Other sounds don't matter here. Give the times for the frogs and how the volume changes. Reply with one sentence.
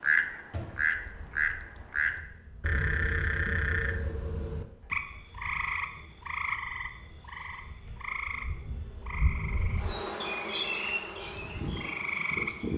The frogs can be heard from 0.0 to 12.7 s, getting quieter.